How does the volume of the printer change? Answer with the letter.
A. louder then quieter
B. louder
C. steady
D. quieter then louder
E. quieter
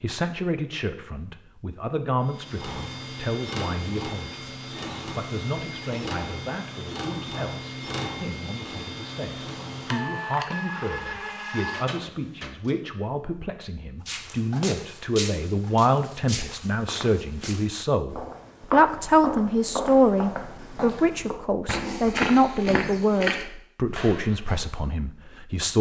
C.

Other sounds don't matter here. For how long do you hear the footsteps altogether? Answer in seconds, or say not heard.
11 s.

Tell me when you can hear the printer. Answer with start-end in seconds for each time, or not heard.
2.2-12.8.